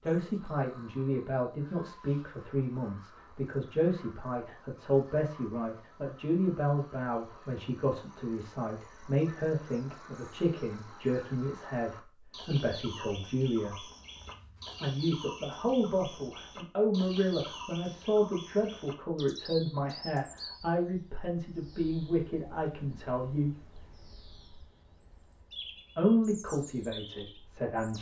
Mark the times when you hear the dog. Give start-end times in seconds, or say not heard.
not heard.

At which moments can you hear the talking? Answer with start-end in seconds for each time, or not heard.
0.0-13.8, 14.8-23.6, 25.9-27.9.